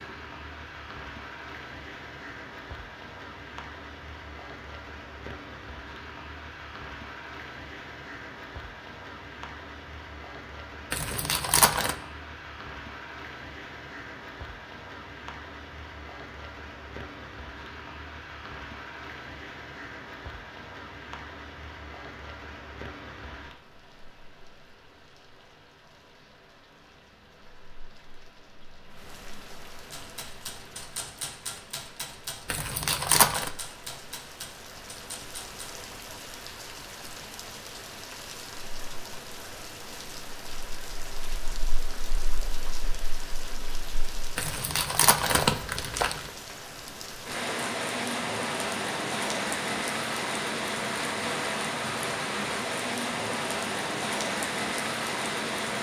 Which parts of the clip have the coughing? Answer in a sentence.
You can't hear the coughing here.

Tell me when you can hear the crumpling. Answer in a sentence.
The crumpling can be heard from 10.9 to 11.9 s, from 32.5 to 33.5 s and from 44.4 to 46.3 s.